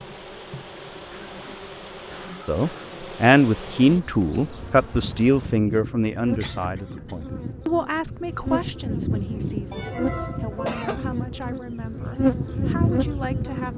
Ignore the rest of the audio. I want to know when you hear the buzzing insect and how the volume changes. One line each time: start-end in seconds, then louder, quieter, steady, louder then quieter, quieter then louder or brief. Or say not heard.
0.0-13.7 louder.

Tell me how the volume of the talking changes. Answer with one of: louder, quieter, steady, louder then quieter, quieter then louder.
quieter.